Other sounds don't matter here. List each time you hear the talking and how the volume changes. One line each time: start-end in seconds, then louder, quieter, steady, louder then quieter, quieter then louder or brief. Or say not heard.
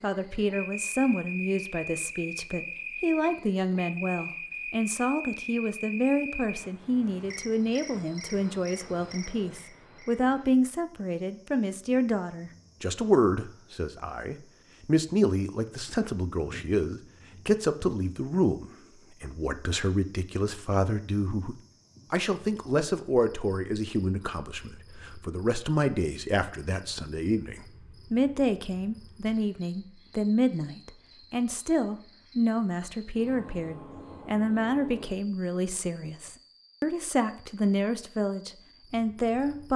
0.0-39.7 steady.